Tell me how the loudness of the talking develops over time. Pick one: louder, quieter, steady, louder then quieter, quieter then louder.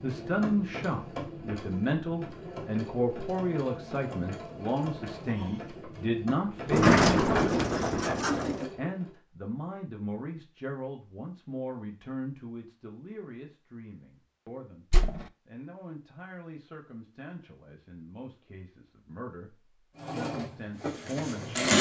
quieter then louder.